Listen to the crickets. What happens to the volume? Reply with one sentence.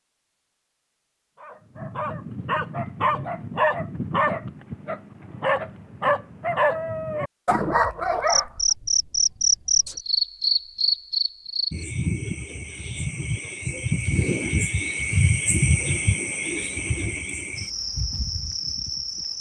The loudness of the crickets goes down.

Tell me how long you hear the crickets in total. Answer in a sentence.
You can hear the crickets for 11 seconds altogether.